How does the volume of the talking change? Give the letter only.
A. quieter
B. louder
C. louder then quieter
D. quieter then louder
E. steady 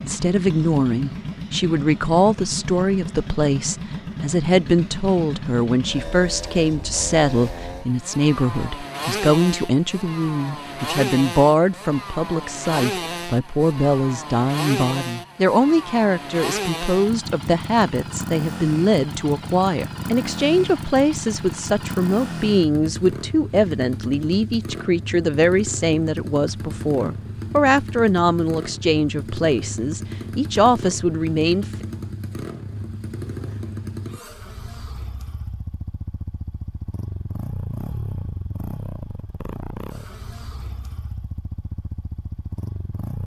E.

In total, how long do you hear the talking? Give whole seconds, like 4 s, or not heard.
32 s.